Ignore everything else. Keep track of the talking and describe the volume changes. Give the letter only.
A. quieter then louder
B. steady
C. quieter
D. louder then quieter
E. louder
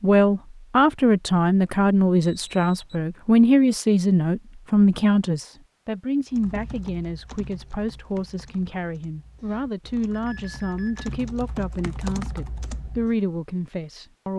C.